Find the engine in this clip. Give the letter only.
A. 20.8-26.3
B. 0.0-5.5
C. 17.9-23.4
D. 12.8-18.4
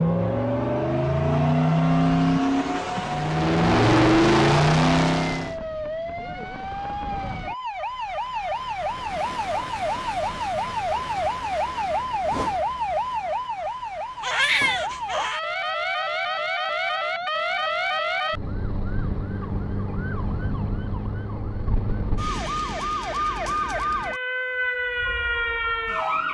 B.